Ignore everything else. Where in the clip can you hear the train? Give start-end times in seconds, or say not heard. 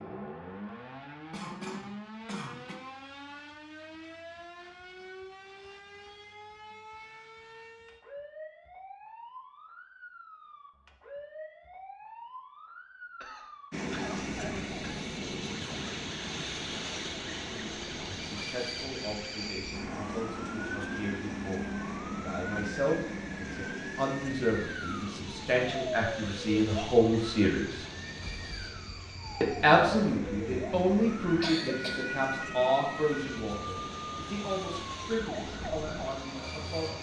13.7-36.9.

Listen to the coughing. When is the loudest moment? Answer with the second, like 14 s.
32 s.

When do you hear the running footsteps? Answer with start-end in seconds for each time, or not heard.
not heard.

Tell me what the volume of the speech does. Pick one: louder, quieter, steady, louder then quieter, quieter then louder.
louder then quieter.